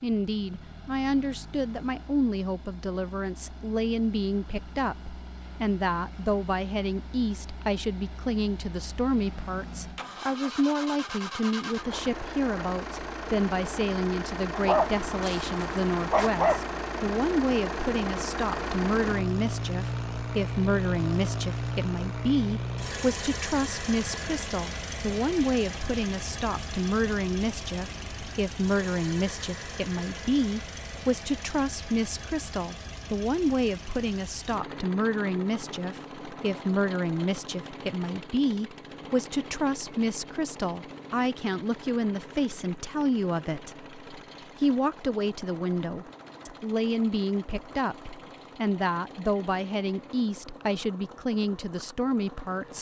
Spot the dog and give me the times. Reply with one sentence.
You can hear the dog from 14.6 to 16.6 s.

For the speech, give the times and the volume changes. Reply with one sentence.
The speech can be heard from 0.0 to 52.7 s, at a steady volume.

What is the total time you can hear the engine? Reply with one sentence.
The engine can be heard for 53 seconds in total.